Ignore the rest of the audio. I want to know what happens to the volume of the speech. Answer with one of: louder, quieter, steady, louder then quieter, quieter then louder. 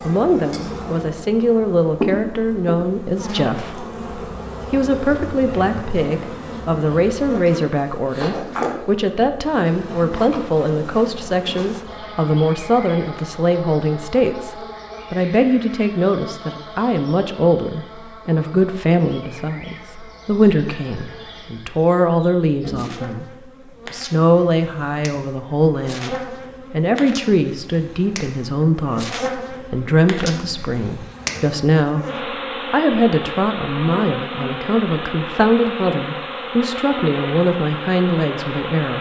steady.